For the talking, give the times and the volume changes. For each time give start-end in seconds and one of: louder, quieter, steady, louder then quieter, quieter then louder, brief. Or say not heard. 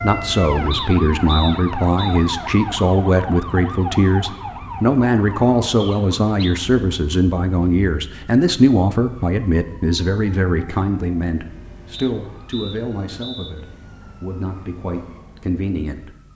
0.0-16.1 quieter.